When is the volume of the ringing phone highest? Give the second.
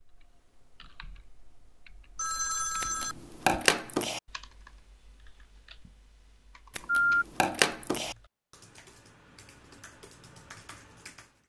7 s.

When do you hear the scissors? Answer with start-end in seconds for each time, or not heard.
2.8-4.2, 6.8-8.2.